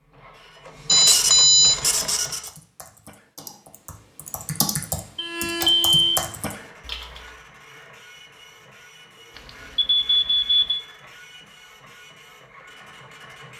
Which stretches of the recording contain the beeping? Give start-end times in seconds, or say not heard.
0.8-1.8, 5.2-6.2, 9.3-10.8.